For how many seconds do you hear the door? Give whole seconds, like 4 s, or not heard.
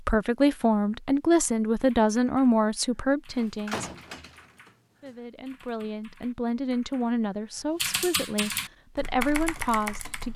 2 s.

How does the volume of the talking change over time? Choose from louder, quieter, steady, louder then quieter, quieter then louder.
quieter then louder.